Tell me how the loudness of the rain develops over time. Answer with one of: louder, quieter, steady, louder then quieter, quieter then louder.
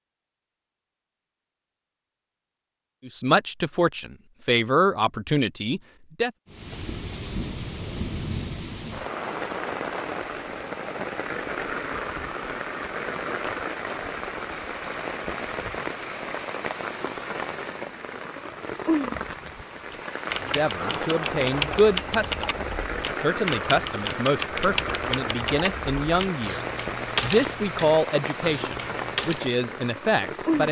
steady.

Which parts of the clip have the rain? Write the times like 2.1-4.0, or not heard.
6.5-30.6.